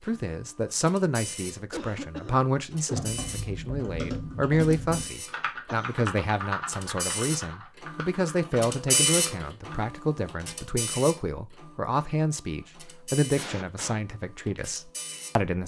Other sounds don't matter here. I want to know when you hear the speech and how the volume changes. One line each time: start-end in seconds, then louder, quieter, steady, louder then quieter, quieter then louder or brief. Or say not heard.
0.0-15.6 steady.